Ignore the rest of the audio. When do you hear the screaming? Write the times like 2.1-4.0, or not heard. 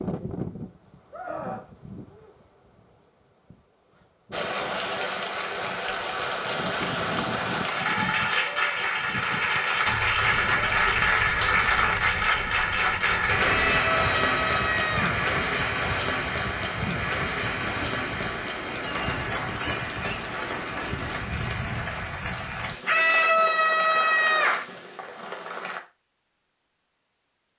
1.1-2.3, 13.4-15.2, 22.9-24.6.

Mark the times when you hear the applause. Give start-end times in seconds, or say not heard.
4.3-25.8.